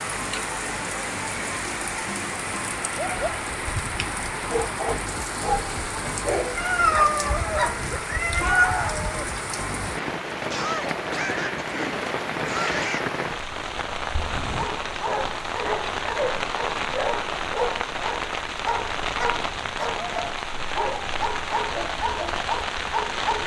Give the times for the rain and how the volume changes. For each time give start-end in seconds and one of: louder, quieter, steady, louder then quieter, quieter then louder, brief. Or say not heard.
0.0-23.4 steady.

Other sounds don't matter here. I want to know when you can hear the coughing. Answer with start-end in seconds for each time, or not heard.
10.5-13.1.